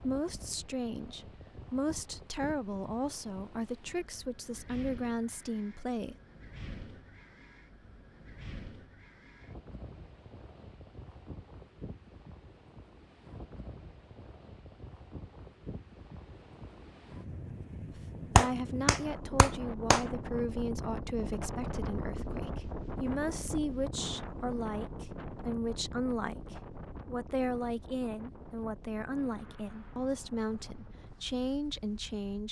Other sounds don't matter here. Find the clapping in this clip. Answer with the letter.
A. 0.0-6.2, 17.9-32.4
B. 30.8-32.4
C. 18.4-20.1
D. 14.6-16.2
C.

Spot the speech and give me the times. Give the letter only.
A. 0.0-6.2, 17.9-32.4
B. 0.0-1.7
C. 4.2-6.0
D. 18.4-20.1
A.